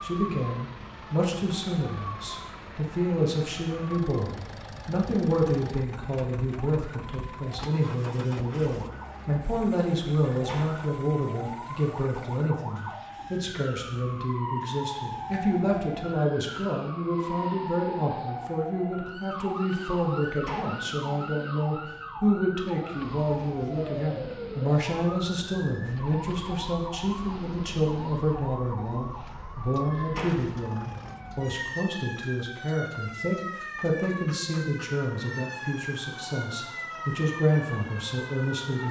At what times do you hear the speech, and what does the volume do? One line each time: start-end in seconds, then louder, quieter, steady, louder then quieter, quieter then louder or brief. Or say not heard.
0.0-38.8 steady.